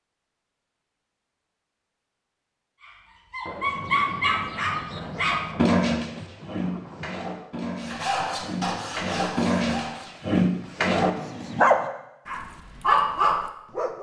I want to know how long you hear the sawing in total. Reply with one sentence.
The sawing can be heard for 2 seconds in total.